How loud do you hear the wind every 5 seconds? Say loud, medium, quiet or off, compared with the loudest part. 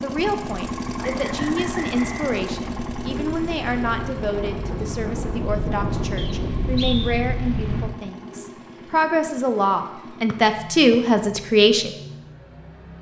medium, loud, off.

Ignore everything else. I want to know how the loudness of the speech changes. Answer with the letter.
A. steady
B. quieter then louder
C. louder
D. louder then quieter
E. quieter
C.